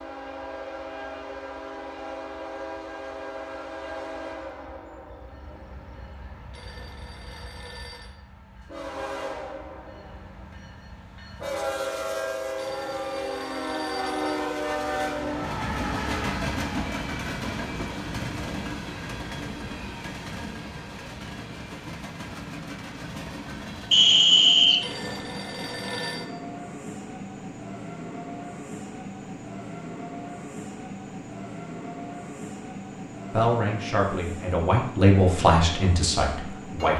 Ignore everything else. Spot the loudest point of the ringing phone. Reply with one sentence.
The volume of the ringing phone peaks at 26 seconds.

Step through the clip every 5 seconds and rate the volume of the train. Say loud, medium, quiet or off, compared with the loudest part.
medium, medium, loud, loud, medium, medium, medium, medium.